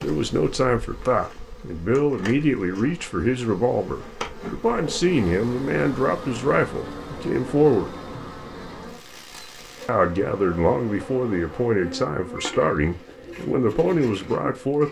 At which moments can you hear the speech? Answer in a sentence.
The speech can be heard from 0.0 to 8.0 s and from 9.8 to 14.8 s.